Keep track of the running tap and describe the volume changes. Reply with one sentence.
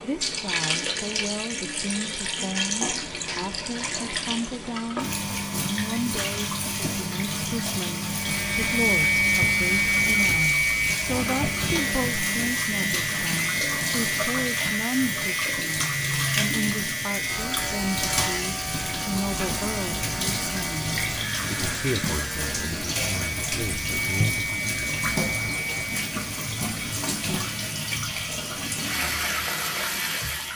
The volume of the running tap stays about the same.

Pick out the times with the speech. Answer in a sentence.
The speech can be heard from 0.0 to 24.7 s.